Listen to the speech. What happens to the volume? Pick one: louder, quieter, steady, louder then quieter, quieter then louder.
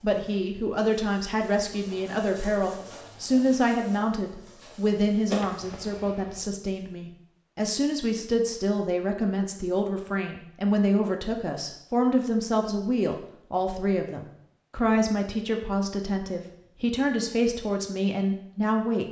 steady.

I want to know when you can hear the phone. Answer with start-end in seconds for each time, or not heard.
not heard.